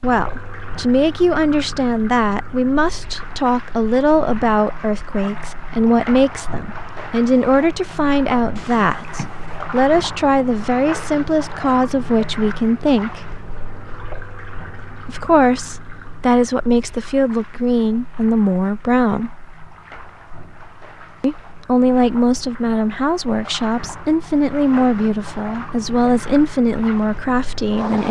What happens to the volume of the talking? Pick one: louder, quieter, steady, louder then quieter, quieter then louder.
steady.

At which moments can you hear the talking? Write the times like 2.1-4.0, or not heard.
0.0-13.3, 15.1-19.3, 21.2-28.0.